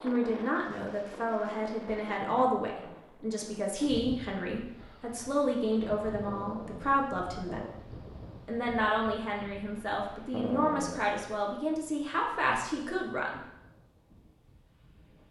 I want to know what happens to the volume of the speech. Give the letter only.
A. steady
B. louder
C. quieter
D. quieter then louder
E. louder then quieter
A.